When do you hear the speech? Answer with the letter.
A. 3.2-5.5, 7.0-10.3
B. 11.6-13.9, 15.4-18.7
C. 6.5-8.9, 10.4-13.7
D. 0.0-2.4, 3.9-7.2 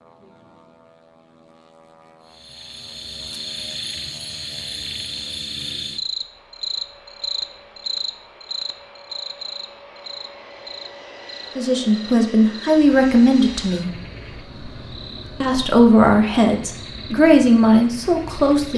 B.